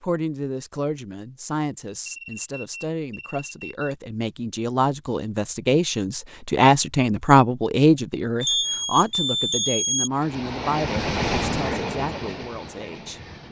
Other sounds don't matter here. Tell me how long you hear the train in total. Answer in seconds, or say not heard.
3 s.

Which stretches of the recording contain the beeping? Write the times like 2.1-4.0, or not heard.
2.0-4.0, 8.4-10.1.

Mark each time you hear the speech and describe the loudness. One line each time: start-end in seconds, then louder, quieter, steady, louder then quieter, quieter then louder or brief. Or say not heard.
0.0-13.2 louder then quieter.